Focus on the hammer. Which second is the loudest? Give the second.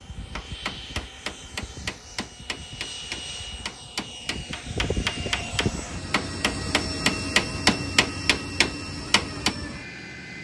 8 s.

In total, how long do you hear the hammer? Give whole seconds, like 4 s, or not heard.
9 s.